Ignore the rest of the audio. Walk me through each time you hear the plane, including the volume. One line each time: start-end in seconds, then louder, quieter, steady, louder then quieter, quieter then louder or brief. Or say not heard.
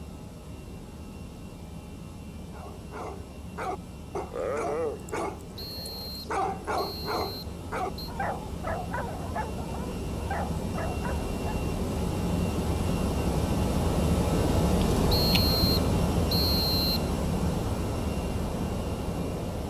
0.0-19.6 louder.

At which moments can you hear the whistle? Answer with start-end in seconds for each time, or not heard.
5.5-8.1, 15.1-17.1.